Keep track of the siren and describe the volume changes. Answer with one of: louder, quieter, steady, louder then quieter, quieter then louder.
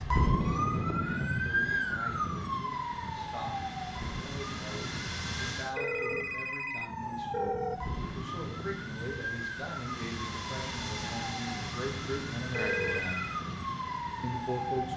quieter.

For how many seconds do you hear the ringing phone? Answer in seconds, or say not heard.
4 s.